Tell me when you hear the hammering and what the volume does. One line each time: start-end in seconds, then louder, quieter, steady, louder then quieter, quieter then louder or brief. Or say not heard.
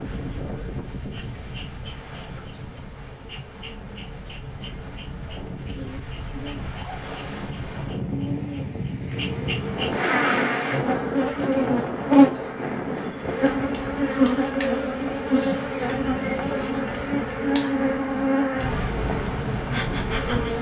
not heard.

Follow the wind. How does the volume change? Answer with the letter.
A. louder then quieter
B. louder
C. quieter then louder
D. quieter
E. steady
B.